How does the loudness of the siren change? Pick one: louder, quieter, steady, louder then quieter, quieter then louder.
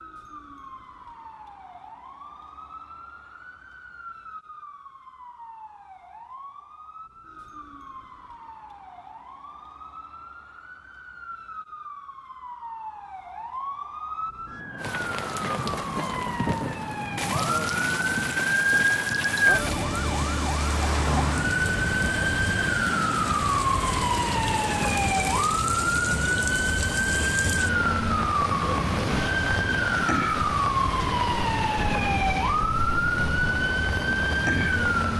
louder.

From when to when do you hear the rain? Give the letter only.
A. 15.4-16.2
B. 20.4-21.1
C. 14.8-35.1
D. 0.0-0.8
C.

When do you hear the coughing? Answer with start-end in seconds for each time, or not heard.
15.4-16.2.